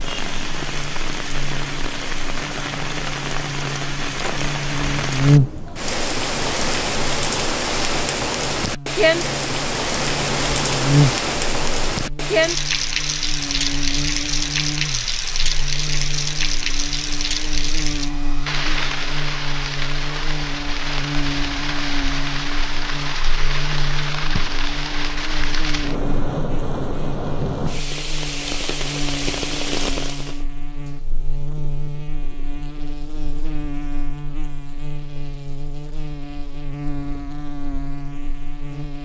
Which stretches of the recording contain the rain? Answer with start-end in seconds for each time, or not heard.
0.0-30.4.